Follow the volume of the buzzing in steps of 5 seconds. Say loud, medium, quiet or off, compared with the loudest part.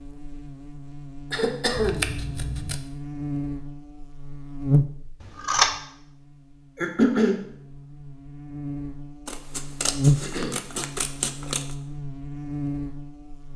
loud, quiet, loud.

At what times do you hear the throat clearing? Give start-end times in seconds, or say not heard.
1.3-2.1, 6.8-7.3, 10.2-10.6.